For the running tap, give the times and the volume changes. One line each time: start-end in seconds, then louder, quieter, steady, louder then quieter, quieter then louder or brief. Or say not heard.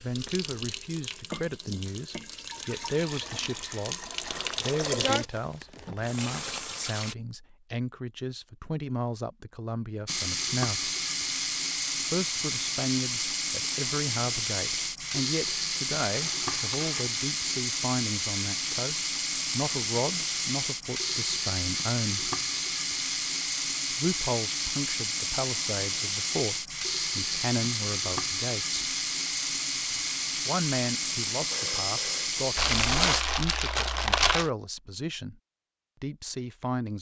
0.0-7.2 louder then quieter
10.1-33.2 steady.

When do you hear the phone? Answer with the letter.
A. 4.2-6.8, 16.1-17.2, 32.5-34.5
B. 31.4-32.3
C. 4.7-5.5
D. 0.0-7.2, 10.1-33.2
B.